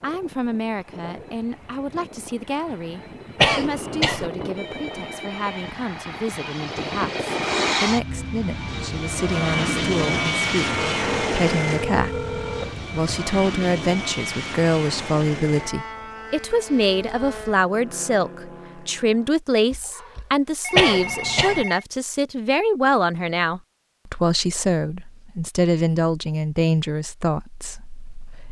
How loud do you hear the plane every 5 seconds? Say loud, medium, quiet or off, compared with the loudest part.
medium, loud, loud, medium, off, off.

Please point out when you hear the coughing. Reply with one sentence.
You can hear the coughing from 3.4 to 4.3 s and from 20.8 to 21.6 s.